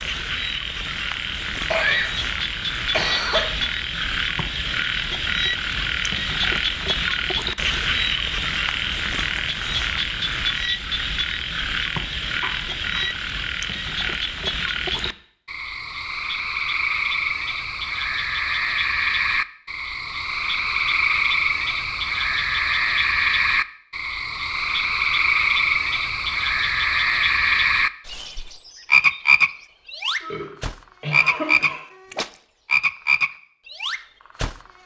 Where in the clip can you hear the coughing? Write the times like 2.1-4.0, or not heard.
1.7-3.7, 12.4-13.1, 30.2-31.8.